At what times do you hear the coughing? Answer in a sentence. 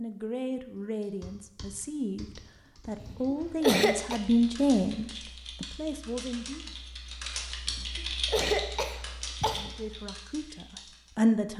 The coughing can be heard from 3.0 to 4.2 s and from 7.7 to 9.7 s.